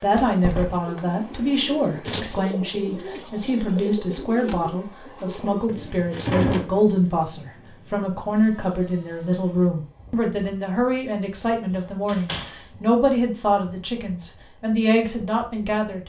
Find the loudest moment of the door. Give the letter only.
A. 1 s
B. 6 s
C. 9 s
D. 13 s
B.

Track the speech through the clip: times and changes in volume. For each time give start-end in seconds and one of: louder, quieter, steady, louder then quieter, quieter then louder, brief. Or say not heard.
0.0-16.0 steady.